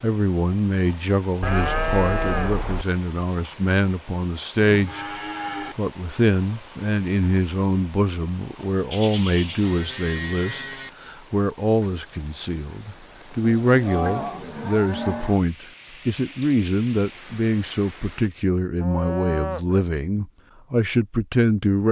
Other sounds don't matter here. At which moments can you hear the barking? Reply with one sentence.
You can't hear the barking here.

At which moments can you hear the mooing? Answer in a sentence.
The mooing can be heard from 1.4 to 2.9 s, from 4.7 to 5.8 s, from 8.9 to 10.9 s, from 13.4 to 15.4 s and from 18.8 to 19.8 s.